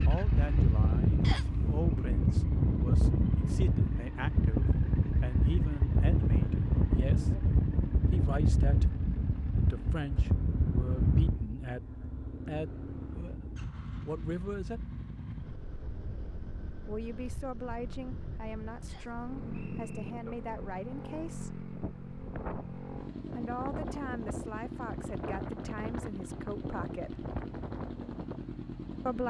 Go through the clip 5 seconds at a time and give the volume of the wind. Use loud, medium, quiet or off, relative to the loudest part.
loud, loud, medium, quiet, quiet, quiet.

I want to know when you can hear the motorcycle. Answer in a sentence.
The motorcycle can be heard from 0.0 to 29.2 s.